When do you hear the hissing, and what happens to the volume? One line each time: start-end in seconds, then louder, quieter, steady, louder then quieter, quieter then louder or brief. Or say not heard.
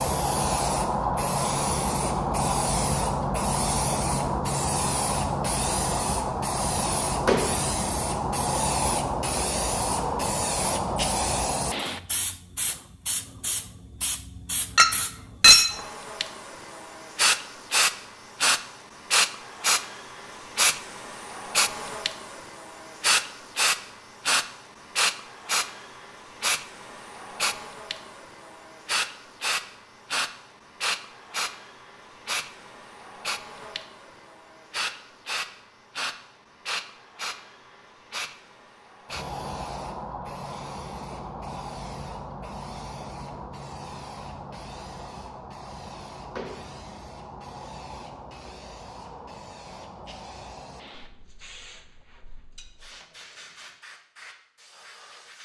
0.0-55.4 quieter.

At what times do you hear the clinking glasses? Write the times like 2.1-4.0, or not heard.
14.8-15.8.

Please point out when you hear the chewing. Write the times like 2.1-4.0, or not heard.
not heard.